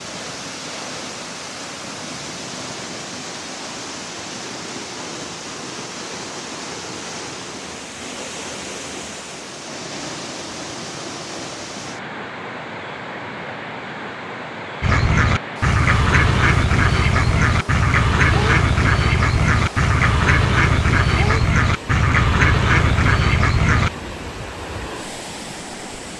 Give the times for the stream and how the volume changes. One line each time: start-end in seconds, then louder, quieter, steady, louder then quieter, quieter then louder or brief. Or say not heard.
0.0-26.1 steady.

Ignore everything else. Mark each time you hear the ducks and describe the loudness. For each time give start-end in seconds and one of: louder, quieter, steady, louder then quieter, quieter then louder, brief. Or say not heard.
14.8-23.9 steady.